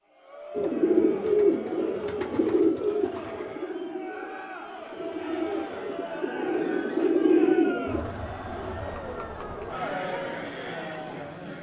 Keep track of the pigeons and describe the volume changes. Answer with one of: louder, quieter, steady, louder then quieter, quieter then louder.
quieter then louder.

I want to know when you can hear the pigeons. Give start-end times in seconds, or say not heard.
0.6-8.1.